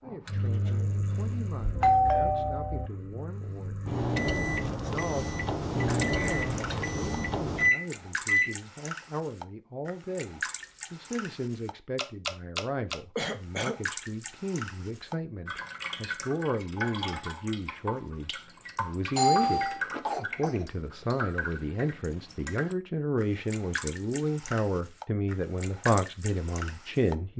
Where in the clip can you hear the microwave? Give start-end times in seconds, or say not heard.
0.1-8.6.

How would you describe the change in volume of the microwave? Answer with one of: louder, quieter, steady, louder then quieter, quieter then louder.
quieter then louder.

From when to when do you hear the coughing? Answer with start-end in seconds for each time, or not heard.
6.1-6.9, 13.2-13.8, 19.7-20.6.